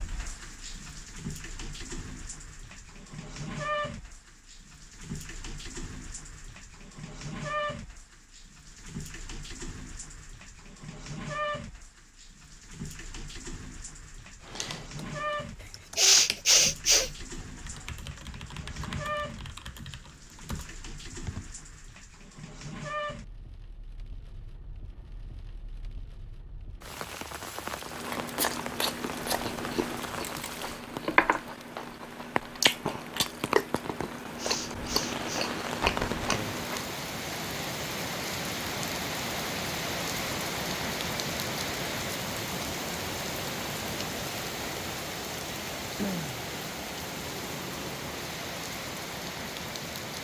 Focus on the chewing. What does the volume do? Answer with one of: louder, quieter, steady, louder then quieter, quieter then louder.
steady.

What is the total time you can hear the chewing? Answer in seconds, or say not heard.
9 s.